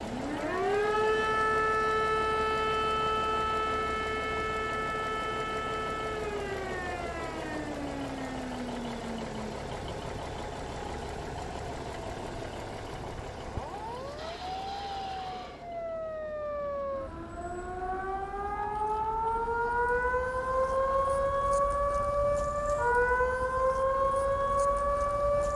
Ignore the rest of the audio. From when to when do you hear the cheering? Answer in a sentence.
You can hear the cheering from 14.2 to 15.7 s.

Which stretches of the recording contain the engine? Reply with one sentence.
You can hear the engine from 0.0 to 25.5 s.